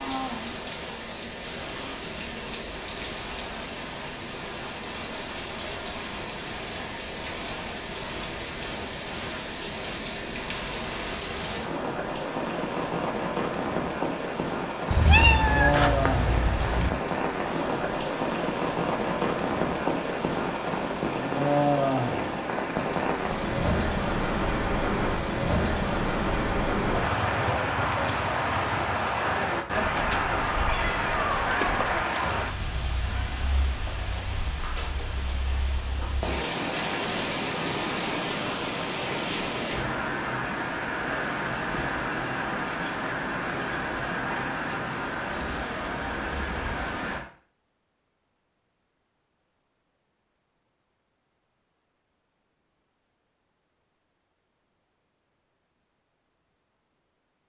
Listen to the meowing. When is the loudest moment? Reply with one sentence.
The volume of the meowing peaks at 15 seconds.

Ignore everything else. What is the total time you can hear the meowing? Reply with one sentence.
The meowing can be heard for 4 seconds in total.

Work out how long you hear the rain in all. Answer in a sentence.
You can hear the rain for 47 seconds altogether.